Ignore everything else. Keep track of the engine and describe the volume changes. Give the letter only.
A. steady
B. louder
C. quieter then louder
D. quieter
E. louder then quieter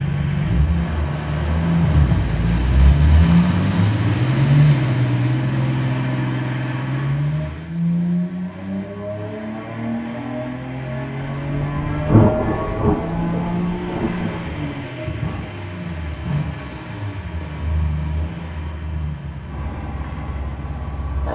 D.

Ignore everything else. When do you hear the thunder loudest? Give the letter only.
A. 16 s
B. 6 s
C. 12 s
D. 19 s
C.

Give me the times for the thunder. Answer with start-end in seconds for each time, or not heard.
11.4-14.9.